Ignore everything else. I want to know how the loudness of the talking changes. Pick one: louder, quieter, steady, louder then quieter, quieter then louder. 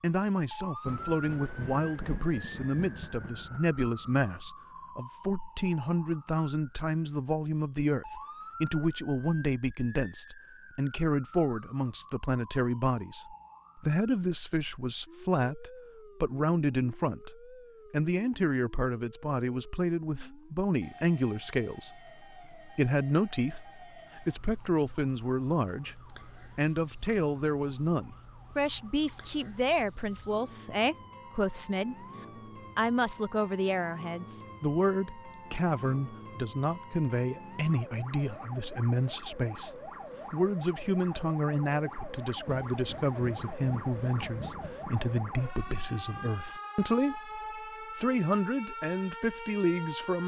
steady.